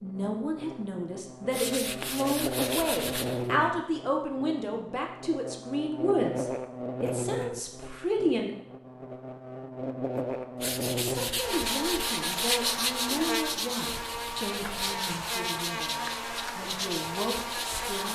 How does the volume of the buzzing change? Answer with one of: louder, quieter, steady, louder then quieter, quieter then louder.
steady.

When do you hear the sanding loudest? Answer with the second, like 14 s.
13 s.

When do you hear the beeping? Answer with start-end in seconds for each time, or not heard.
not heard.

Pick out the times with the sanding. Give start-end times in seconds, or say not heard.
1.5-3.5, 10.6-18.1.